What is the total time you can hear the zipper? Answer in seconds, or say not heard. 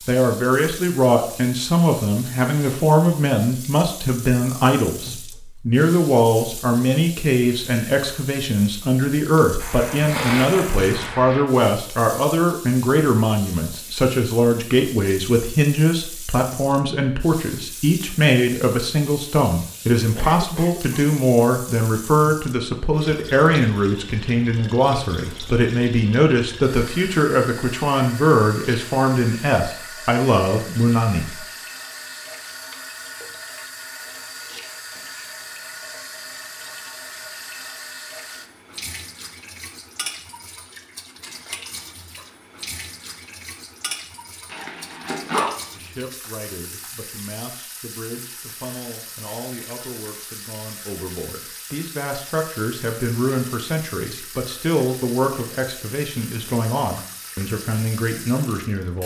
3 s.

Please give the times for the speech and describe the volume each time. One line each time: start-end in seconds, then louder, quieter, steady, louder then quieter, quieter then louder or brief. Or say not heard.
0.1-31.4 steady
45.8-59.0 louder.